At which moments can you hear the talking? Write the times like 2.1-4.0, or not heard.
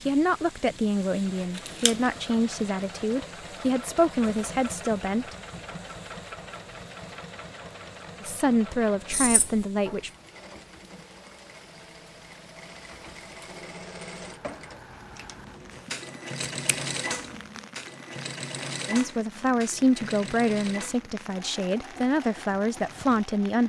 0.1-5.3, 8.2-10.1, 18.9-23.6.